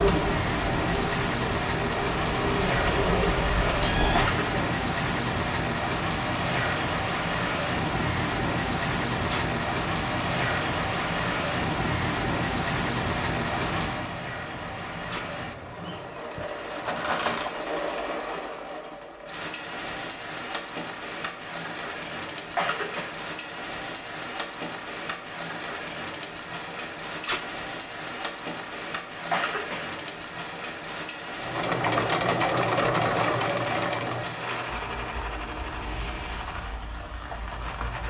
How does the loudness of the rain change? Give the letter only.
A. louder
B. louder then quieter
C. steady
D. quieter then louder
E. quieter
E.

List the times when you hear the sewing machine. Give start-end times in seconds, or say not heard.
0.0-4.3, 15.4-17.6, 31.4-38.0.